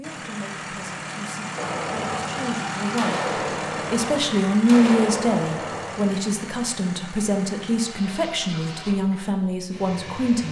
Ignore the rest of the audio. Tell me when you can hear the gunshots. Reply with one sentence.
You can hear the gunshots from 1.6 to 6.2 s.